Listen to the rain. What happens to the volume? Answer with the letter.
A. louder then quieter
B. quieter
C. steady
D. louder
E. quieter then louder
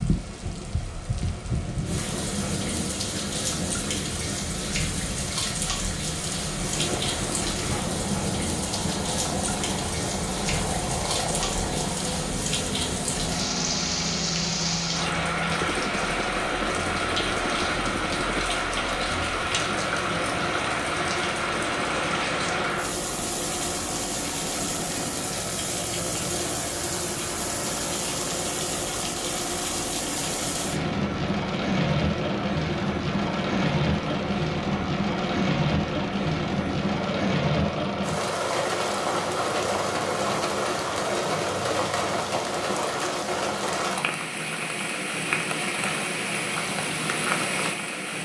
C.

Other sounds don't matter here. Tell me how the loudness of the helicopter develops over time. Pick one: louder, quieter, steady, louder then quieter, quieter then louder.
steady.